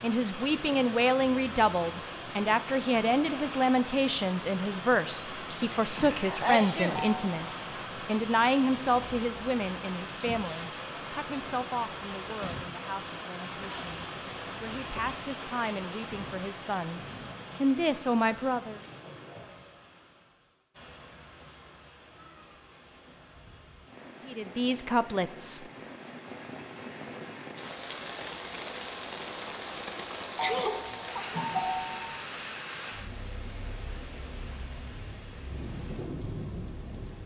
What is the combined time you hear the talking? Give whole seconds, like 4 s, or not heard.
20 s.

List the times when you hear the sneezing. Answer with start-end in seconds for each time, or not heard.
5.6-7.0, 30.4-31.4.